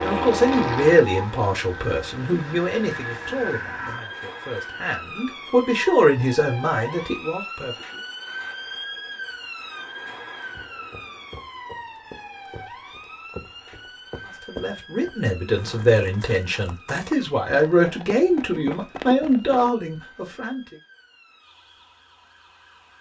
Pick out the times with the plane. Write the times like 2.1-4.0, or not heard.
0.0-3.5.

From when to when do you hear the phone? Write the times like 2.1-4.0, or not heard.
not heard.